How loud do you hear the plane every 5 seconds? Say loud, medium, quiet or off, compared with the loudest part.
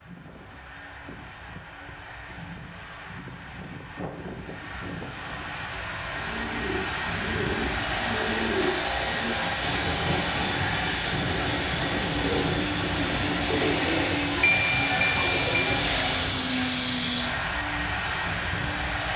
quiet, loud, loud, loud.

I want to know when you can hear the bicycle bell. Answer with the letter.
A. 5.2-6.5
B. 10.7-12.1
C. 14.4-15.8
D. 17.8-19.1
C.